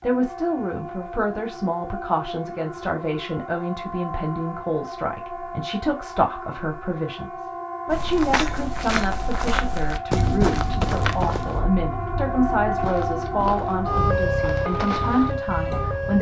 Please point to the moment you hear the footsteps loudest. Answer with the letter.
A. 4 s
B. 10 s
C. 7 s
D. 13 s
B.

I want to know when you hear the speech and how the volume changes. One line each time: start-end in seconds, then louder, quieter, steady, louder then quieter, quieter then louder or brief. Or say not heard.
0.0-16.1 steady.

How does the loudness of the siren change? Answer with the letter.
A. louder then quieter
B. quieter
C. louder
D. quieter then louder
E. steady
C.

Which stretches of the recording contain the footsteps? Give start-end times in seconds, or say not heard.
7.8-15.3.